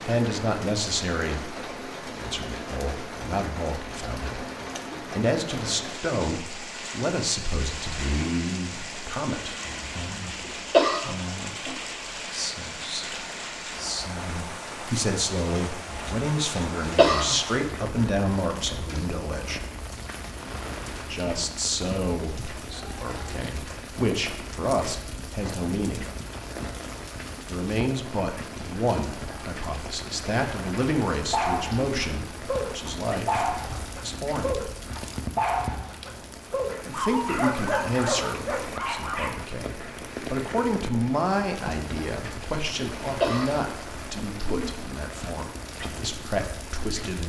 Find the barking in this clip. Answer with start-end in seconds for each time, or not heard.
31.1-39.3.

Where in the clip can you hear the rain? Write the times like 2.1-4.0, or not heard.
0.0-47.2.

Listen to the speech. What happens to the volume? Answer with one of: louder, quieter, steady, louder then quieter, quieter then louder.
steady.